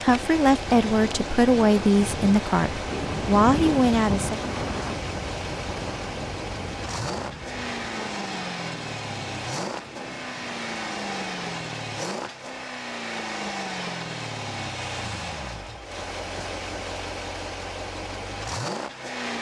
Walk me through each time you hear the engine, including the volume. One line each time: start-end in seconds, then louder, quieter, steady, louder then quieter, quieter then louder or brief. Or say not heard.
0.0-19.3 steady.